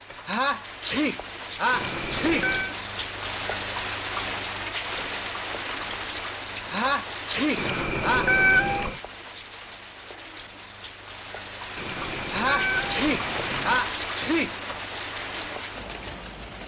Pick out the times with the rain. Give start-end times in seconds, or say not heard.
0.0-16.6.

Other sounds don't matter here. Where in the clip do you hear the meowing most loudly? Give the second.
8 s.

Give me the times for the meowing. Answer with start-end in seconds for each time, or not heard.
1.7-2.8, 7.5-9.0, 11.8-13.8.